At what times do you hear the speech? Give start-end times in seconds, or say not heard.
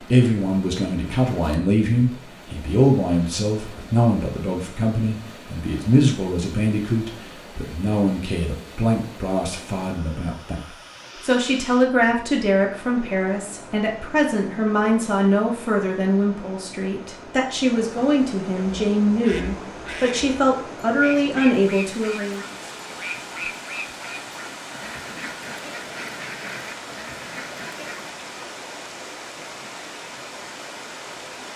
0.0-22.4.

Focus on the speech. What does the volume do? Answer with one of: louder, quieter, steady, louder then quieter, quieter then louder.
steady.